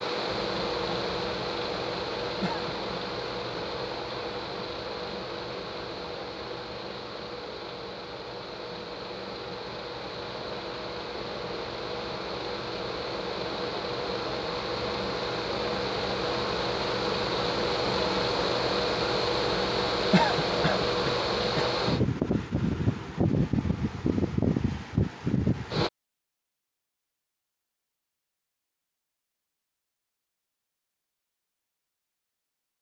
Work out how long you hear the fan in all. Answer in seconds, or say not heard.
26 s.